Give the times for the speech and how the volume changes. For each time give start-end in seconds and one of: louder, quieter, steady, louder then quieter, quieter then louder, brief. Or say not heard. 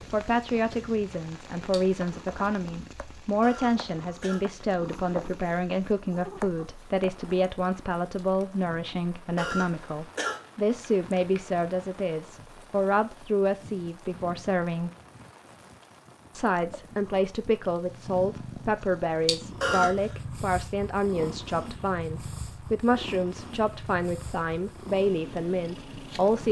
0.1-14.9 steady
16.3-26.4 steady.